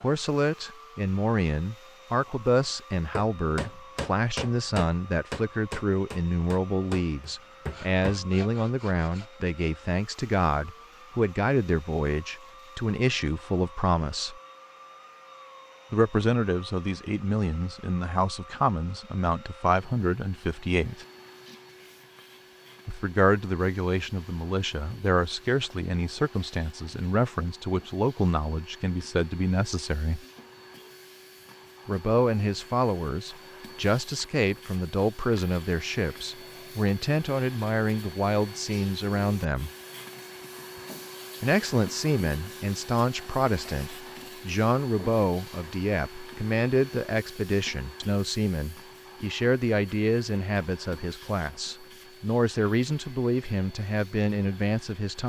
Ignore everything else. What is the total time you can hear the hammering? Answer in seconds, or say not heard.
5 s.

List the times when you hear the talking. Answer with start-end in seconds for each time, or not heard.
0.0-14.4, 15.9-21.1, 22.9-30.2, 31.9-39.7, 41.4-55.2.